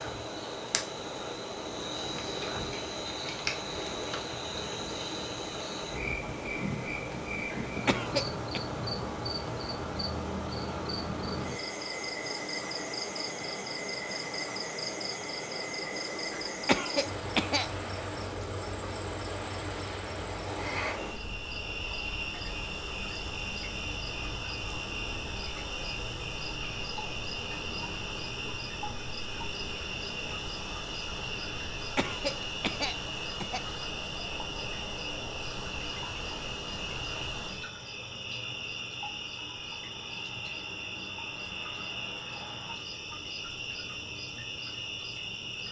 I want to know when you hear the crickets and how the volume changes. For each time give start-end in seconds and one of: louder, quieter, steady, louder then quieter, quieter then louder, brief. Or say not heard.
0.0-45.6 steady.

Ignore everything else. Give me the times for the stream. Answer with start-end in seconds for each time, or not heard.
0.0-37.8.